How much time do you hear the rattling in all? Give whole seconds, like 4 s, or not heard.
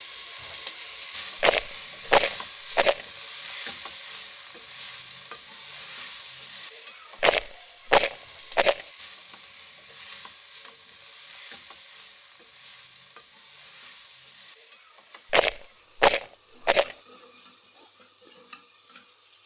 5 s.